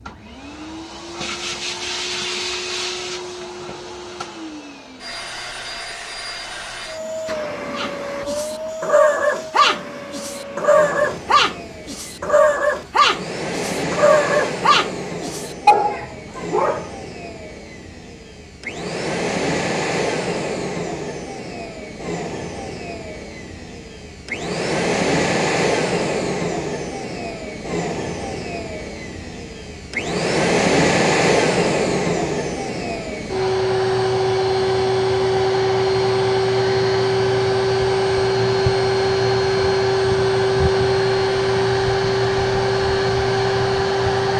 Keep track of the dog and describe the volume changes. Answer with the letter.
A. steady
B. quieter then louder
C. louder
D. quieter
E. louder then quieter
A.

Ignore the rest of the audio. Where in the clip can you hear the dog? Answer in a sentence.
The dog can be heard from 7.8 to 16.9 s.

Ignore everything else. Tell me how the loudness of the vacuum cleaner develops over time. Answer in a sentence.
The volume of the vacuum cleaner goes up.